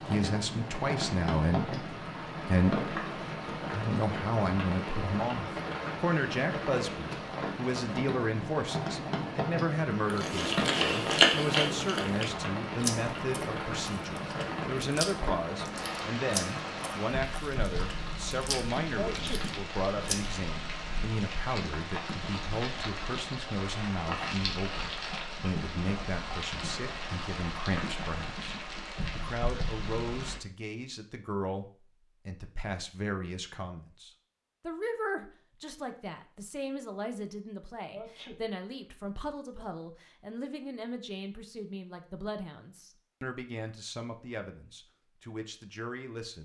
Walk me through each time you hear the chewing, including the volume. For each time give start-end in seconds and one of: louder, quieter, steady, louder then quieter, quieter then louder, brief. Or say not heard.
10.1-20.4 quieter.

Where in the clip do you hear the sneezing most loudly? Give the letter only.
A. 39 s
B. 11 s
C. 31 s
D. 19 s
D.